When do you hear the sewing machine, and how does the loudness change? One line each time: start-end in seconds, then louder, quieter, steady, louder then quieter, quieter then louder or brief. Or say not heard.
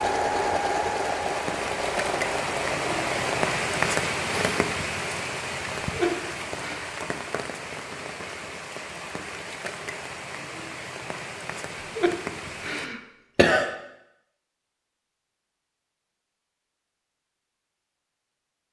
0.0-4.8 quieter.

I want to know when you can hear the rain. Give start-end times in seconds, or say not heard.
0.0-12.9.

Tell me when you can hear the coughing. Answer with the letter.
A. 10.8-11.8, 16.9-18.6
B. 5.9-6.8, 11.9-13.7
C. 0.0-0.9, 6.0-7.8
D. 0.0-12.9
B.